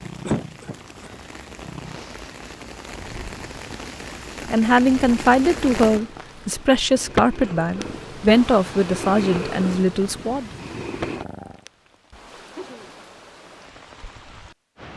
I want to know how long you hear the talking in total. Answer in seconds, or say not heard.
6 s.